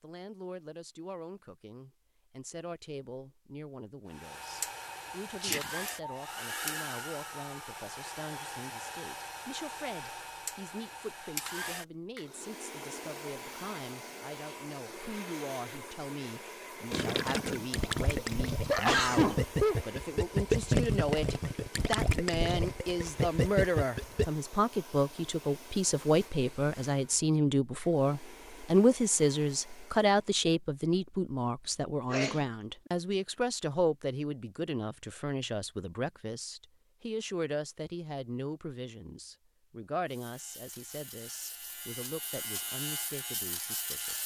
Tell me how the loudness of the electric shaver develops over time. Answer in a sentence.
The loudness of the electric shaver goes up.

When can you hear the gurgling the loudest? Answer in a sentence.
The loudest moment of the gurgling is at 21 seconds.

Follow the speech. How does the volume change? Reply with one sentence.
The loudness of the speech goes up, then down.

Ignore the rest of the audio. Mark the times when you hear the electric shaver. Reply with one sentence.
The electric shaver can be heard from 40.0 to 44.2 s.